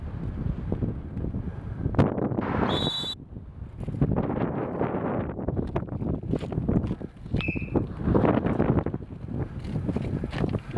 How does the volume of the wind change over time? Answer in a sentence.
The volume of the wind stays about the same.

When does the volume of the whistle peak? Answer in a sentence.
The loudest moment of the whistle is at 3 seconds.